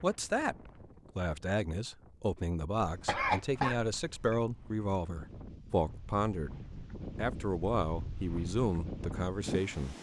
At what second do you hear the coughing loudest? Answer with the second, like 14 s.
3 s.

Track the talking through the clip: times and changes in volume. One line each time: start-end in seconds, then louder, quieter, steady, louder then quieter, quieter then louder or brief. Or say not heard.
0.0-9.9 steady.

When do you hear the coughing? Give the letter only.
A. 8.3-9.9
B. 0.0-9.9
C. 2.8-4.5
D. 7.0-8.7
C.